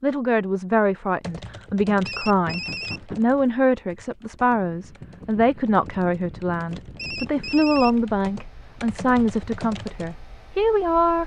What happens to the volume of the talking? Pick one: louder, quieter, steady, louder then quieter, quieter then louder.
steady.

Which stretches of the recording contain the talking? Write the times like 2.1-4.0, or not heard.
0.0-11.2.